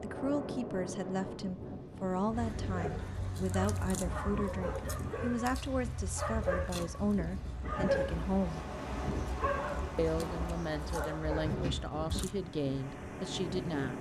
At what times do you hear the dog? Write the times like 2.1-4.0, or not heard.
2.3-12.3.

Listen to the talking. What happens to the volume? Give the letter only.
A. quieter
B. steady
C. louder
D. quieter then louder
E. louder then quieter
B.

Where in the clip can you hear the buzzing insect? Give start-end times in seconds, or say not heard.
not heard.